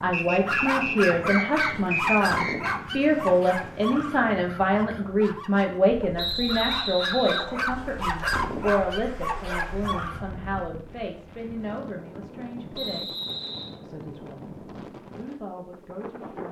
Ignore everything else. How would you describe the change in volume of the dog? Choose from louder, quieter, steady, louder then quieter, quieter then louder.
quieter then louder.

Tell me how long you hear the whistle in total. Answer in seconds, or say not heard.
5 s.